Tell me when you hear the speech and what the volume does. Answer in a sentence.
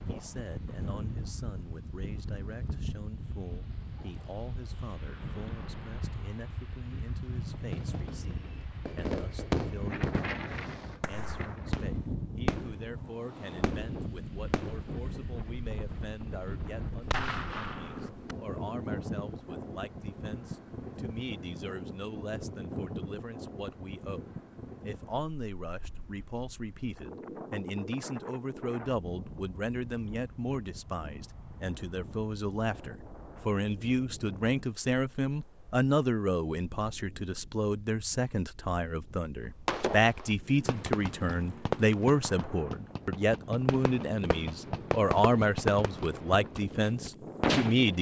You can hear the speech from 0.1 to 47.9 s, getting louder.